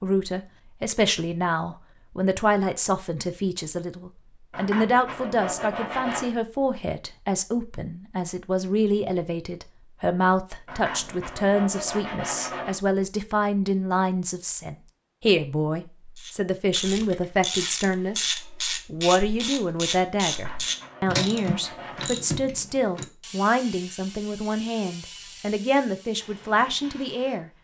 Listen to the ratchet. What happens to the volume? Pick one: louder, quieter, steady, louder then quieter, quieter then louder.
quieter.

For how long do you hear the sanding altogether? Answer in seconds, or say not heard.
6 s.